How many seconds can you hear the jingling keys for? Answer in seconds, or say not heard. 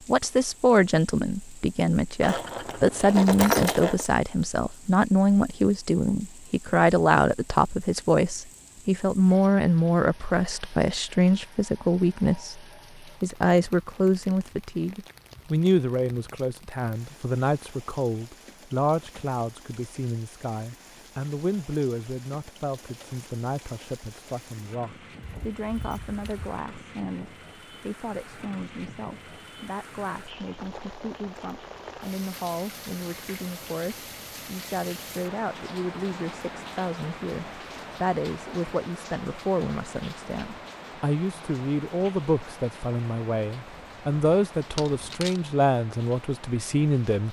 4 s.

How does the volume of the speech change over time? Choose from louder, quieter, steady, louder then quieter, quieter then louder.
quieter then louder.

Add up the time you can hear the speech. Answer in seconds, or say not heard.
47 s.